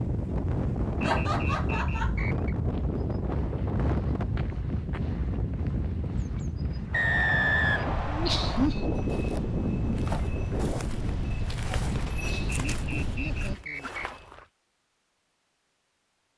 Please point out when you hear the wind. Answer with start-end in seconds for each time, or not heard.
0.0-13.6.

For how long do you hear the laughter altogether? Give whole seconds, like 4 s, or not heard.
4 s.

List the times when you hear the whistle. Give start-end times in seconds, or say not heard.
1.0-2.5, 6.9-8.7, 12.7-14.1.